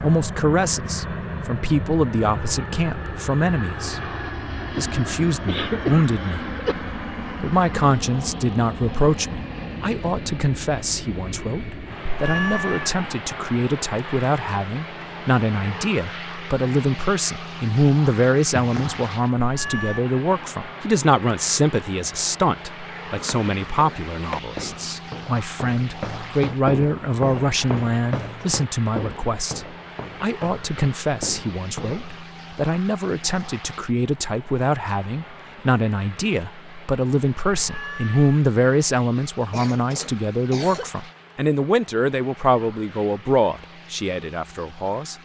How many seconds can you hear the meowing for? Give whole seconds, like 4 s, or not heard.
2 s.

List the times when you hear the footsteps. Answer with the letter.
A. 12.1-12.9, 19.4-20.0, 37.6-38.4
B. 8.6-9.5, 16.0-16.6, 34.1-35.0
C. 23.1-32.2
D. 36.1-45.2
C.